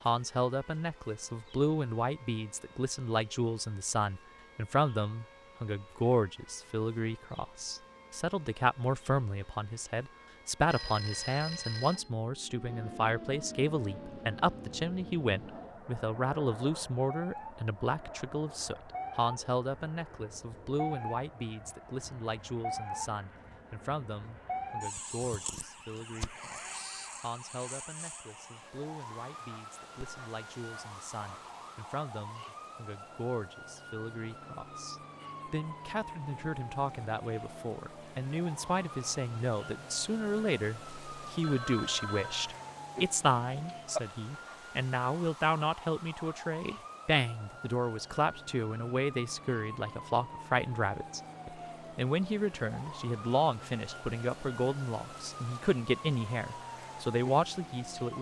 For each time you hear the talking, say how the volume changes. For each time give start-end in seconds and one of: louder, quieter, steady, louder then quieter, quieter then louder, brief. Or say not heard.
0.1-58.1 quieter then louder.